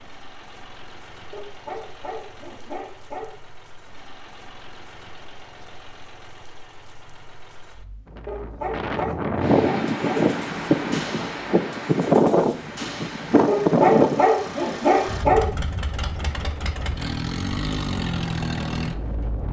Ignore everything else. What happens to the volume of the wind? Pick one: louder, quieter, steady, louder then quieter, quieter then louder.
quieter.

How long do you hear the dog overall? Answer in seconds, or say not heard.
6 s.